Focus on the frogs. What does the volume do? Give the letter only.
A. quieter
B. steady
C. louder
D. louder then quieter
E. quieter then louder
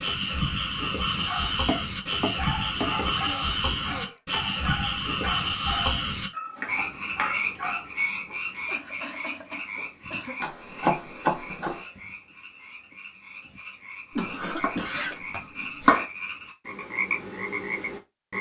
E.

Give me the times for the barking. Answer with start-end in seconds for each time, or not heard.
1.1-1.6, 2.4-7.9.